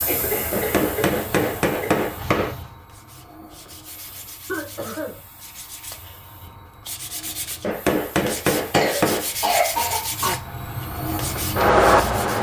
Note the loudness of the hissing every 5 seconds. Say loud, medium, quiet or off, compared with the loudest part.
quiet, quiet, loud.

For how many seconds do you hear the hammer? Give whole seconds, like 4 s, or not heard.
4 s.